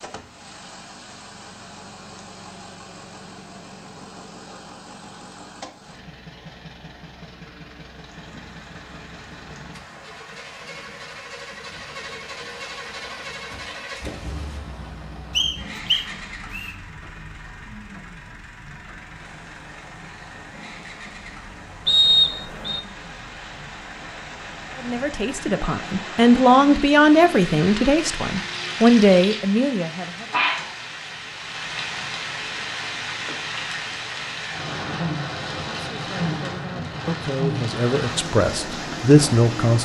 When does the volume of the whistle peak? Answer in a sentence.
The loudest moment of the whistle is at 22 seconds.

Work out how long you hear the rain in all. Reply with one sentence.
The rain can be heard for 32 seconds in total.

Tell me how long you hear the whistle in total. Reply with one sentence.
You can hear the whistle for 2 seconds altogether.